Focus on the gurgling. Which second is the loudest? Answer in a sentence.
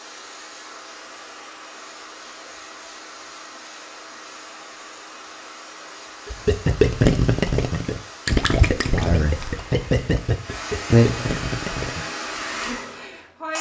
The volume of the gurgling peaks at 7 seconds.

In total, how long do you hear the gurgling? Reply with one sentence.
You can hear the gurgling for 6 seconds altogether.